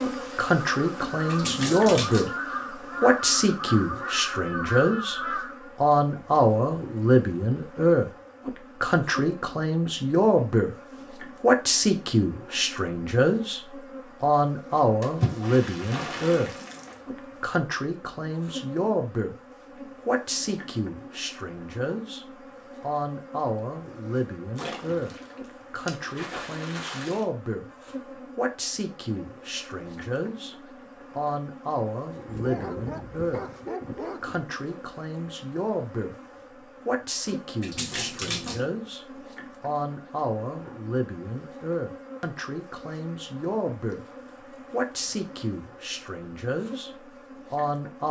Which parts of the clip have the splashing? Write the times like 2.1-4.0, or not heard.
1.2-2.4, 15.0-16.9, 24.6-27.2, 37.6-38.7.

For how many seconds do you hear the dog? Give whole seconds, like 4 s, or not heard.
2 s.